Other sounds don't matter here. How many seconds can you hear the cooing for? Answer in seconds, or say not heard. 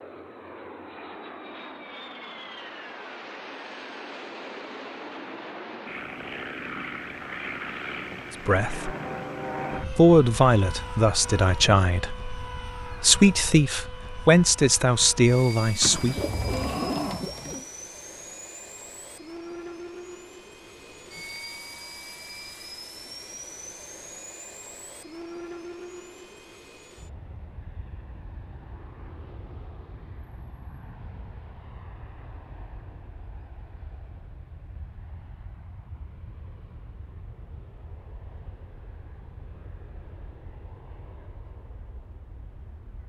2 s.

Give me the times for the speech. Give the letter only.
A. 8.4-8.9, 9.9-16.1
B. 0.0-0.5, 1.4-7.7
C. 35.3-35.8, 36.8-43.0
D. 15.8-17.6
A.